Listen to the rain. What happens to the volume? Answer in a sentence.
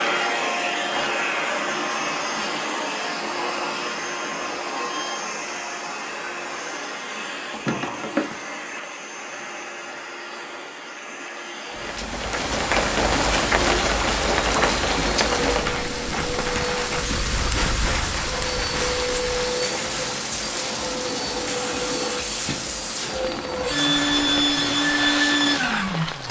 The loudness of the rain goes down.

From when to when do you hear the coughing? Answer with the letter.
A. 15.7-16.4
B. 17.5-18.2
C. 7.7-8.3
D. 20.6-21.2
C.